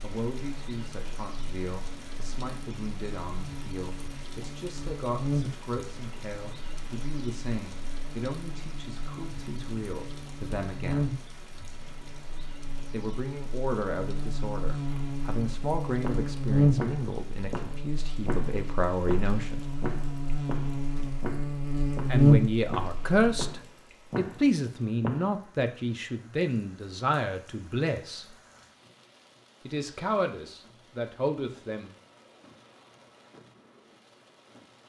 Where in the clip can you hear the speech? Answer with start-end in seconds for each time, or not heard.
0.0-11.1, 12.9-19.6, 22.1-28.4, 29.6-31.9.